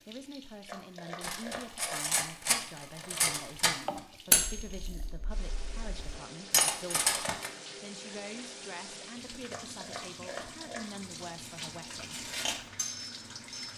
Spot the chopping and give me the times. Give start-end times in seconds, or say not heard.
0.7-2.1, 9.5-10.9.